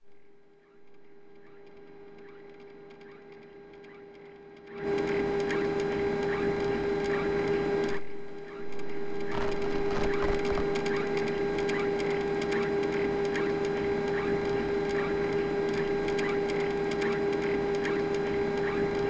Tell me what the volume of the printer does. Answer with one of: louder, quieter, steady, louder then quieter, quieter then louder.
louder.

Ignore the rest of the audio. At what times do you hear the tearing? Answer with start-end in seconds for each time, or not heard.
9.3-10.8.